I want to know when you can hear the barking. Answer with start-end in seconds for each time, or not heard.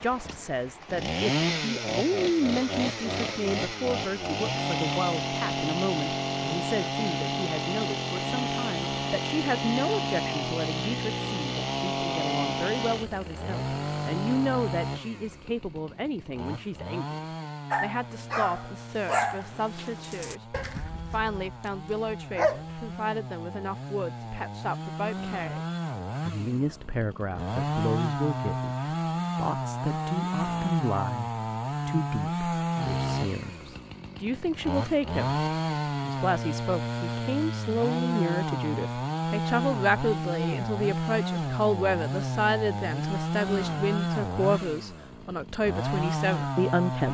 17.7-22.9.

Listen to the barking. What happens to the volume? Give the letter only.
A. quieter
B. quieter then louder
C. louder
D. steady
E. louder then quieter
B.